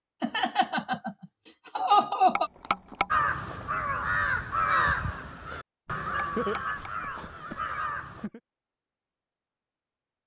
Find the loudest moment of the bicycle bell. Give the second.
3 s.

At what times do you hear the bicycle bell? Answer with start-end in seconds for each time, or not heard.
2.4-3.3, 6.3-6.9.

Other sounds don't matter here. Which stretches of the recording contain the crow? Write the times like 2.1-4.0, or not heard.
3.1-8.3.